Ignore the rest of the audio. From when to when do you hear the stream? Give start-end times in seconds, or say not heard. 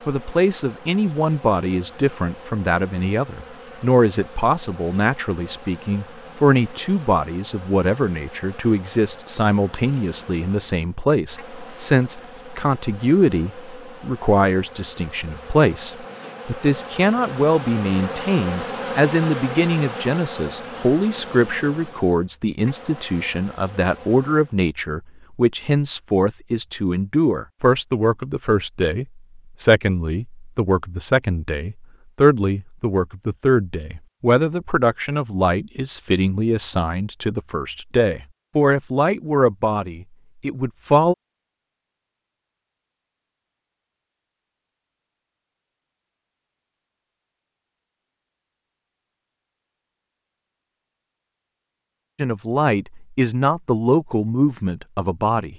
not heard.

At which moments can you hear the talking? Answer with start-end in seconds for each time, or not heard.
0.1-41.1, 52.1-55.5.